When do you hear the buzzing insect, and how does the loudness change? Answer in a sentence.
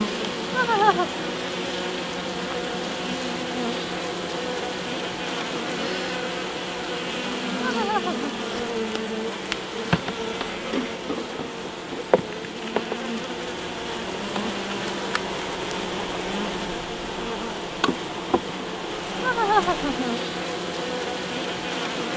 The buzzing insect can be heard from 0.0 to 22.1 s, at a steady volume.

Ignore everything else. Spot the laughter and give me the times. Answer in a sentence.
You can hear the laughter from 0.5 to 1.1 s, from 7.6 to 8.2 s and from 19.2 to 20.1 s.